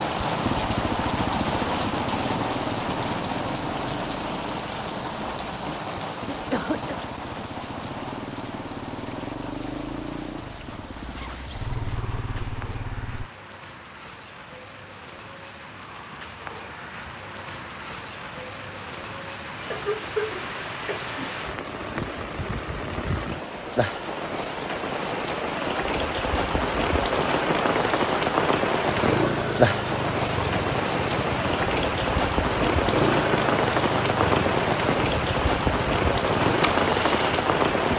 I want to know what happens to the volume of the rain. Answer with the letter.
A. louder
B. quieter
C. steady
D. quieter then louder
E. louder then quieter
D.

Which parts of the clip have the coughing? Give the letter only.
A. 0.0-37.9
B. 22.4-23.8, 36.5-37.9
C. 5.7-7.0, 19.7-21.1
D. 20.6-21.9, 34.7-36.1
C.